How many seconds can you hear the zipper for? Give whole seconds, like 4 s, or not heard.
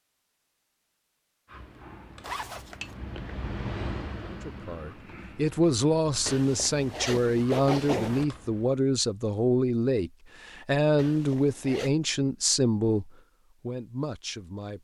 4 s.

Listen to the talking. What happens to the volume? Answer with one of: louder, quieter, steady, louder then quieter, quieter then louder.
steady.